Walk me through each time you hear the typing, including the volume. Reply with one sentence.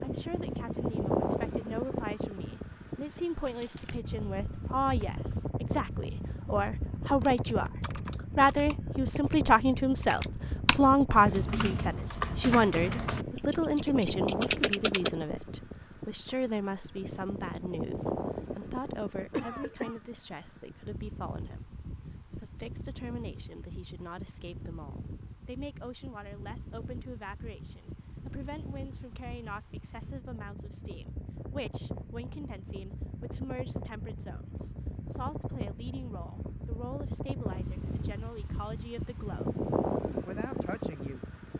The typing can be heard from 3.5 to 15.1 s, getting louder.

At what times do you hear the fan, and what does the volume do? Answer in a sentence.
You can hear the fan from 0.0 to 41.5 s, getting quieter then louder.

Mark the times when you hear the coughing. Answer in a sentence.
You can hear the coughing from 19.3 to 20.0 s.